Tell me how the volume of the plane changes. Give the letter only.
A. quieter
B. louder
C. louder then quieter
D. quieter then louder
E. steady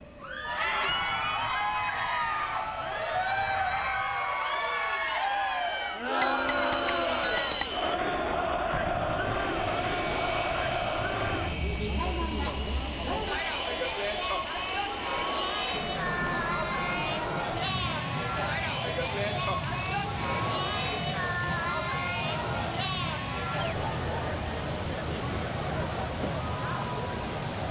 B.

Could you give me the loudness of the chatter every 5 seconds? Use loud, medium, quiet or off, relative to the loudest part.
loud, loud, loud, loud, loud, medium.